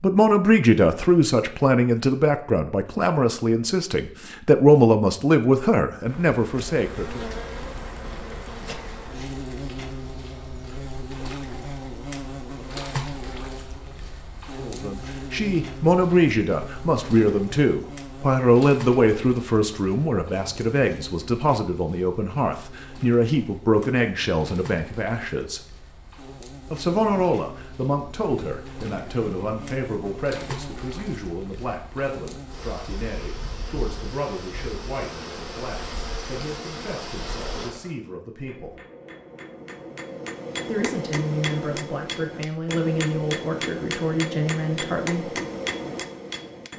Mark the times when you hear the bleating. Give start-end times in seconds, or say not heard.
not heard.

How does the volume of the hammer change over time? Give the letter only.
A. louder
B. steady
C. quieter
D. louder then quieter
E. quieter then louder
A.